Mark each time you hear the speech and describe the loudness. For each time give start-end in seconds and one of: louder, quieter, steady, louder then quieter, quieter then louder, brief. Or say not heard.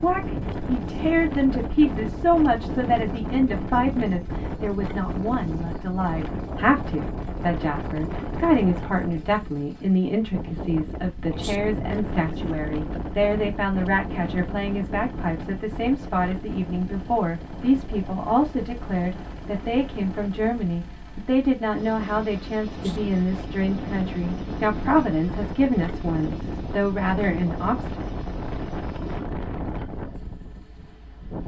0.0-28.0 steady.